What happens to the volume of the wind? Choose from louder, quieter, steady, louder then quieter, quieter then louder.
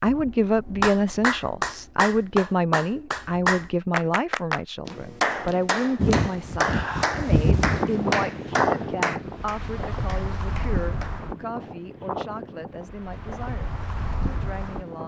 quieter.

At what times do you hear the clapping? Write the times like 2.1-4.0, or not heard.
0.1-11.2.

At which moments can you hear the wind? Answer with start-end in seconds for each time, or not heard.
6.0-15.0.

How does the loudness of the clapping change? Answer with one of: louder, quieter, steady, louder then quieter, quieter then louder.
quieter.